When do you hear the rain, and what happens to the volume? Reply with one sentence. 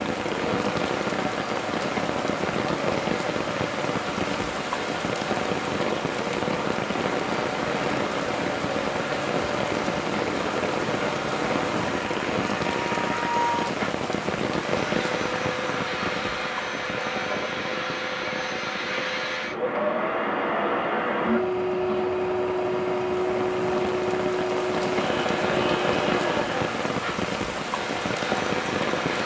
You can hear the rain from 0.0 to 29.2 s, getting quieter then louder.